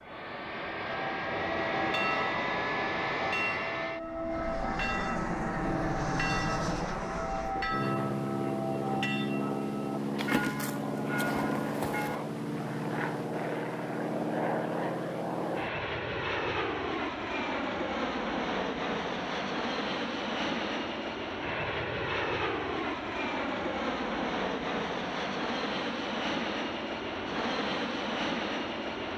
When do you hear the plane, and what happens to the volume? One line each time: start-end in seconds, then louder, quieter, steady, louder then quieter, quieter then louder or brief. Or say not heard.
0.0-29.1 steady.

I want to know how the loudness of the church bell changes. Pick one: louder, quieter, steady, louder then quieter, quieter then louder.
steady.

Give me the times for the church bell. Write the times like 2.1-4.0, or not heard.
0.9-12.2.